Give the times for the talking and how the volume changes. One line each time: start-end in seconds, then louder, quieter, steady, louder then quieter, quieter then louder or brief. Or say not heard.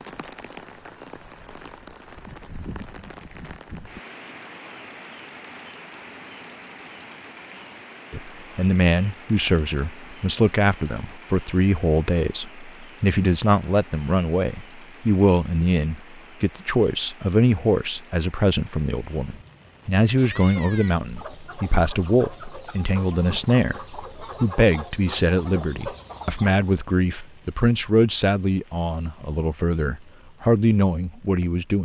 8.1-31.8 steady.